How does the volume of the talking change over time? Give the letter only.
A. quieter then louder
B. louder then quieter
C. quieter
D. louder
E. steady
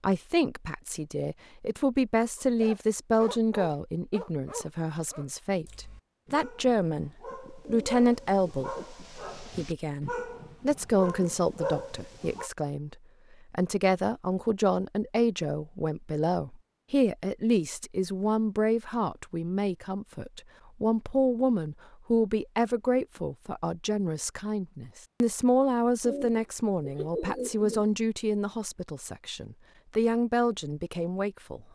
E.